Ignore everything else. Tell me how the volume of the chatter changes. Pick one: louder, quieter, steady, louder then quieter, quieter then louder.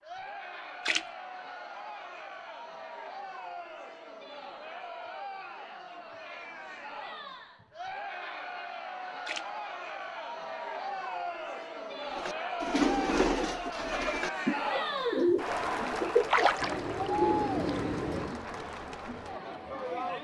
louder.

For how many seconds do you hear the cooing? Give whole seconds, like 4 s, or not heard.
6 s.